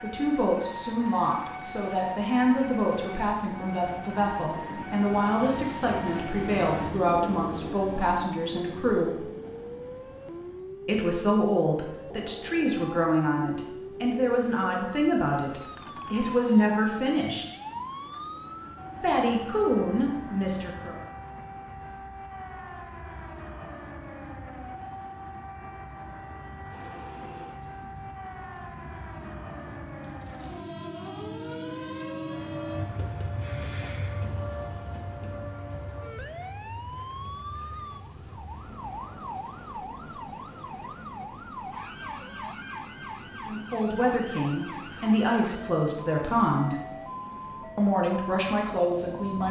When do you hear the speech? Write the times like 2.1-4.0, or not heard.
0.0-9.2, 10.8-17.4, 19.0-20.9, 43.5-46.8, 47.8-49.4.